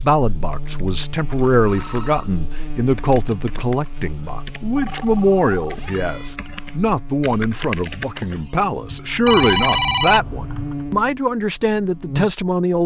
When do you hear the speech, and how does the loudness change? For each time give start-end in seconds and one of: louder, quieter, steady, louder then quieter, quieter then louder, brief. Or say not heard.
0.0-12.8 steady.